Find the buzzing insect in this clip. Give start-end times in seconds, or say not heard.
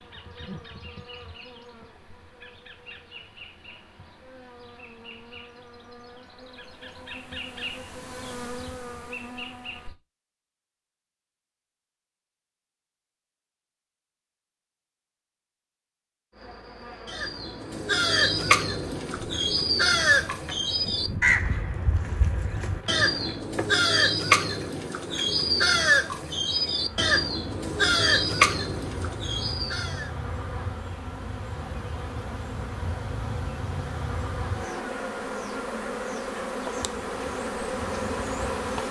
0.0-9.9, 16.3-38.8.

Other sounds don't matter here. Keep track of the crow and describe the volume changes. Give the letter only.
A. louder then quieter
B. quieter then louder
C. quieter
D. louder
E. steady
E.